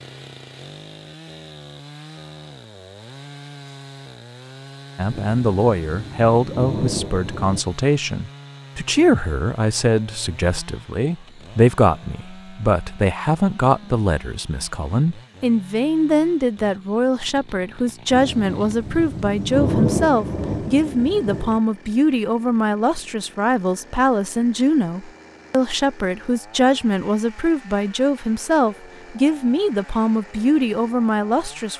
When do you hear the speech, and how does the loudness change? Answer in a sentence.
The speech can be heard from 5.0 to 31.7 s, at a steady volume.